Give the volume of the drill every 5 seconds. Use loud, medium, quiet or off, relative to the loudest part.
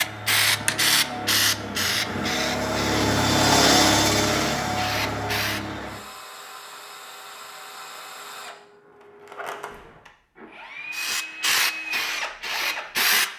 loud, quiet, medium.